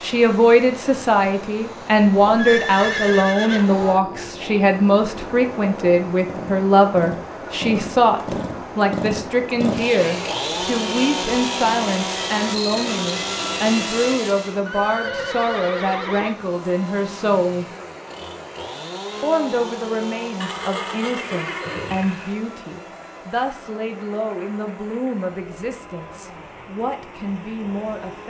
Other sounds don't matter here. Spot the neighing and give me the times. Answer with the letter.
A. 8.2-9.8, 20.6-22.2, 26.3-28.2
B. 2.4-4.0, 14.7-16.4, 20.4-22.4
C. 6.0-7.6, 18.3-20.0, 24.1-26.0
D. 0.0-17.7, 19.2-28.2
B.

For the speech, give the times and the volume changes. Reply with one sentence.
The speech can be heard from 0.0 to 17.7 s, getting quieter; and from 19.2 to 28.2 s, at a steady volume.